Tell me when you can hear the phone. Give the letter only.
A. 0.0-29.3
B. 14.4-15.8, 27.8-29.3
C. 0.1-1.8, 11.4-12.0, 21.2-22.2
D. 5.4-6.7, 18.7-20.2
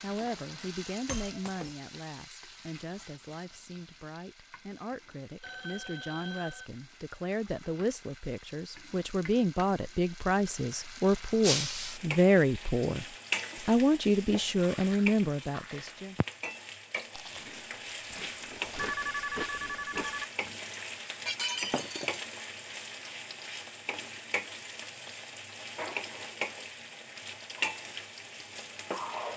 D.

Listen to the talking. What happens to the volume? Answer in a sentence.
The loudness of the talking goes up.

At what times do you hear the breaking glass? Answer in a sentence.
You can hear the breaking glass from 0.1 to 1.8 s, from 11.4 to 12.0 s and from 21.2 to 22.2 s.